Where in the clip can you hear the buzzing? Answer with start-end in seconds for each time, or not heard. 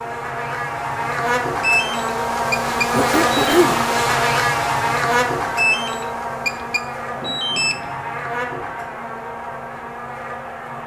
0.0-10.8.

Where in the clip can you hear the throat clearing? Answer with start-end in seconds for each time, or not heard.
2.9-3.8, 7.0-8.0.